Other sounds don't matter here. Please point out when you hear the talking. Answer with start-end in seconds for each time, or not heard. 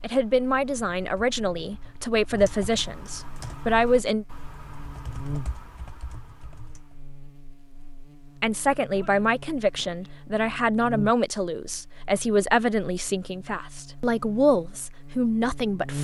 0.0-4.2, 8.4-15.9.